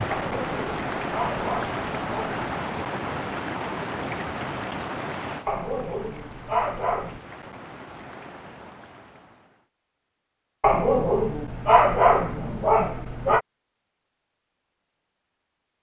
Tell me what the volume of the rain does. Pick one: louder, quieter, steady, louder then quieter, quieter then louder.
quieter.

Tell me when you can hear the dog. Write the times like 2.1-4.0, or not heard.
0.1-2.5, 5.5-7.2, 10.6-13.4.